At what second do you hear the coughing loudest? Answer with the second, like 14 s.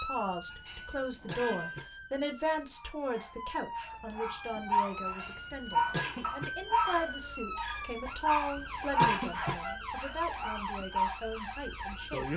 9 s.